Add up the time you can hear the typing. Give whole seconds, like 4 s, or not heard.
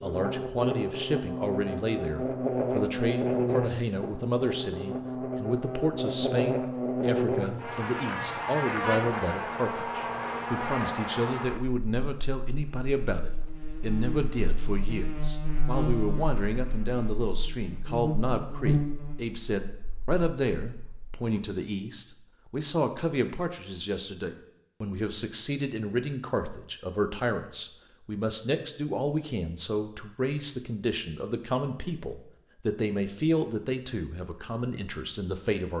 not heard.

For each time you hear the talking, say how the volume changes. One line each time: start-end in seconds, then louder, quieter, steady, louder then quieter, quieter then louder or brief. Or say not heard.
0.0-35.7 steady.